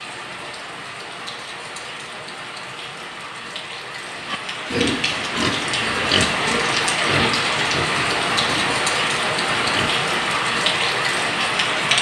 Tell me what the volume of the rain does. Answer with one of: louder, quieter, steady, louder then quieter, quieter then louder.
louder.